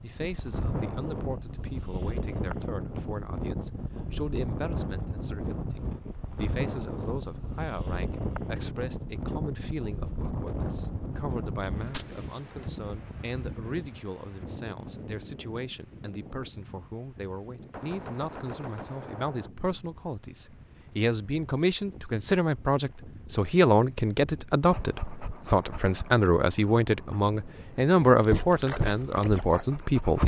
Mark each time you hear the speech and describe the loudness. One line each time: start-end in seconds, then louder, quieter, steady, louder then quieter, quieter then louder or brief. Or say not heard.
0.0-30.2 louder.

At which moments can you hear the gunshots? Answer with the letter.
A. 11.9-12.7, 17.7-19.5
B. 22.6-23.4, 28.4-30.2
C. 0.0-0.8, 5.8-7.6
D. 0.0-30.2
A.